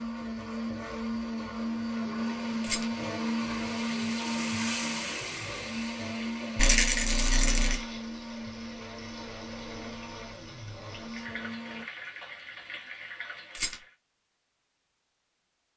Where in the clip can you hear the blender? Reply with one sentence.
The blender can be heard from 0.0 to 11.8 s.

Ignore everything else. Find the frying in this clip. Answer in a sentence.
The frying can be heard from 2.0 to 13.9 s.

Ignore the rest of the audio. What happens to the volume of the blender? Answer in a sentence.
The loudness of the blender goes down.